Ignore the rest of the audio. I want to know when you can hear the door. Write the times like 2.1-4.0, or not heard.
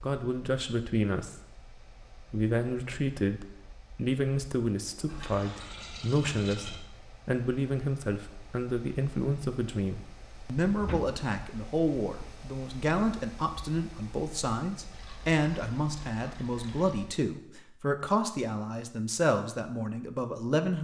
10.8-11.7.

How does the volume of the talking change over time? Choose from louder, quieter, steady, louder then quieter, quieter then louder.
steady.